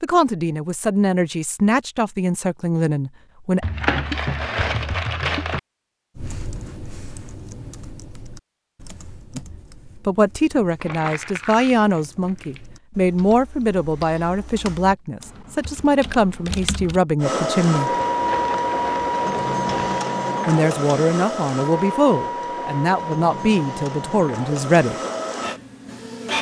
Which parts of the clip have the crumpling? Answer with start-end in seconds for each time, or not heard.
3.6-5.6, 10.8-12.7, 18.1-20.0.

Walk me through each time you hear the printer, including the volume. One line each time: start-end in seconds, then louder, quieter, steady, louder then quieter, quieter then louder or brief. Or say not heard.
17.2-26.3 quieter.